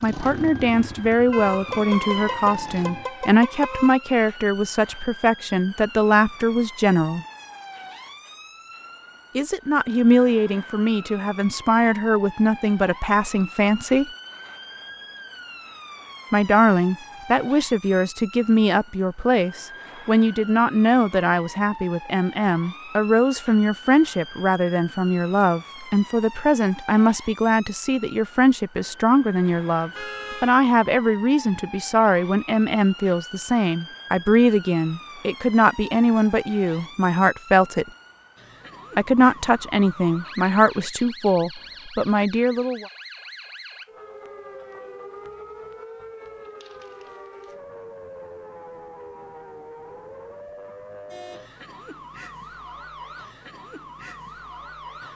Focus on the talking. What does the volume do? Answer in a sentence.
The volume of the talking stays about the same.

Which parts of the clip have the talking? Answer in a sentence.
The talking can be heard from 0.0 to 7.2 s, from 9.3 to 14.1 s, from 16.3 to 37.9 s and from 39.0 to 42.9 s.